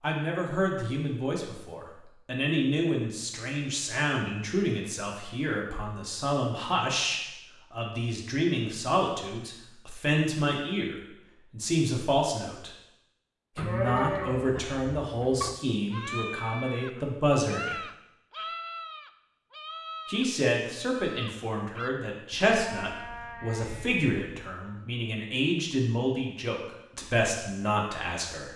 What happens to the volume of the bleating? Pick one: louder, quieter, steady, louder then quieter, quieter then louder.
quieter.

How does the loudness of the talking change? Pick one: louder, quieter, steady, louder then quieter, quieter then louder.
steady.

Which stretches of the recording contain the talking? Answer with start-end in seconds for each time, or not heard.
0.0-12.8, 13.6-17.9, 20.1-28.5.